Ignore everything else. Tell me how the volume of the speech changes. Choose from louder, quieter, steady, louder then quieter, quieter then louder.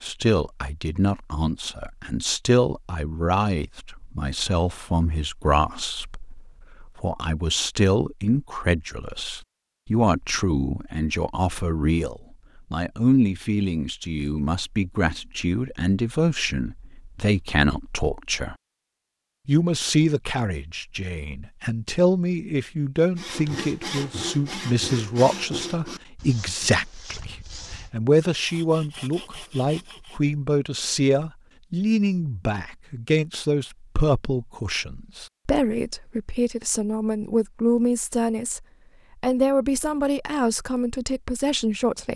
steady.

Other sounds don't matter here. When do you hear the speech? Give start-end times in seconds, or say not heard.
0.0-18.6, 19.4-42.1.